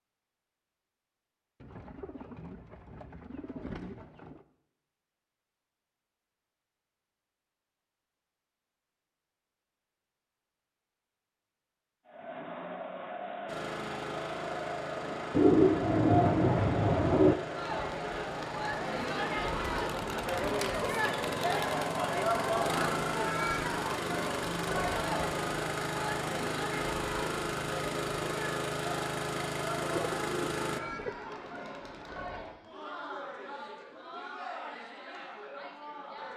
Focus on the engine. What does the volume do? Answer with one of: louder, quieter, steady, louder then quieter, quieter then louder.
louder.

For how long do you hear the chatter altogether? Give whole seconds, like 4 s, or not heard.
24 s.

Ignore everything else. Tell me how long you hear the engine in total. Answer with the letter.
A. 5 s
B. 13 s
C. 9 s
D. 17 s
D.